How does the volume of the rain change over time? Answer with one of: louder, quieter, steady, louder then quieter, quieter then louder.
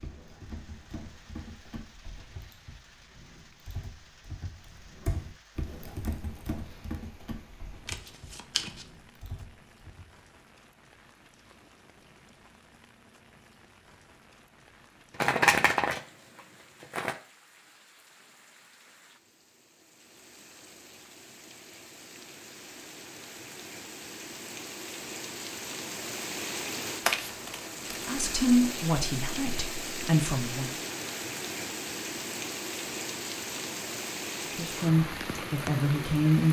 louder.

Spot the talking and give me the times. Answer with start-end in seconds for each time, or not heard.
28.1-30.8, 34.5-36.4.